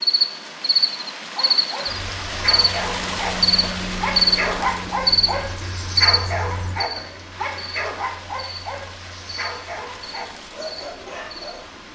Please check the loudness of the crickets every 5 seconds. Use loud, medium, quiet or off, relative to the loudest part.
loud, loud, quiet.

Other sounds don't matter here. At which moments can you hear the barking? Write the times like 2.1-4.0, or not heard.
1.4-11.7.